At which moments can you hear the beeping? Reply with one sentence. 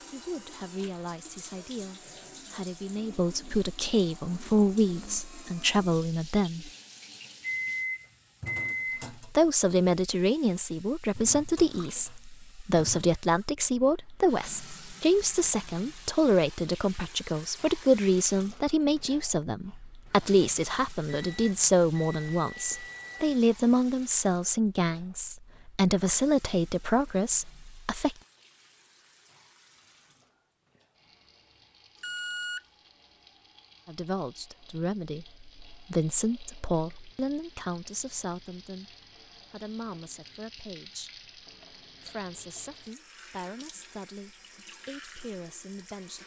The beeping can be heard from 7.4 to 9.1 s, from 21.1 to 23.4 s and from 32.0 to 32.6 s.